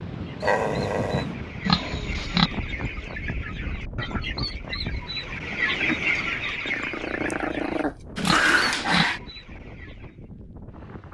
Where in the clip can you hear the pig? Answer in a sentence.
You can hear the pig from 1.6 to 2.5 s and from 8.2 to 9.1 s.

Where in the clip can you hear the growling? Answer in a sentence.
You can hear the growling from 0.4 to 1.2 s and from 6.7 to 9.2 s.